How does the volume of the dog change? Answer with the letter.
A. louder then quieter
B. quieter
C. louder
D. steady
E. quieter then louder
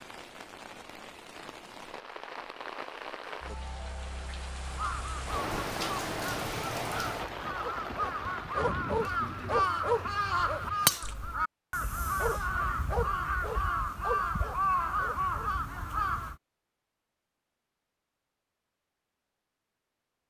E.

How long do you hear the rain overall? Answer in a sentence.
You can hear the rain for 11 seconds altogether.